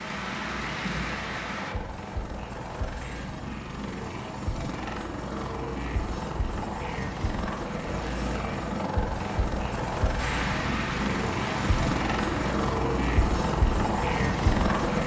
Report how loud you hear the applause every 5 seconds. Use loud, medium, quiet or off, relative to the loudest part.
loud, off, loud.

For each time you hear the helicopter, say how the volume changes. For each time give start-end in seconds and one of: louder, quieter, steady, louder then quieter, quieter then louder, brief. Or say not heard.
0.0-15.0 louder.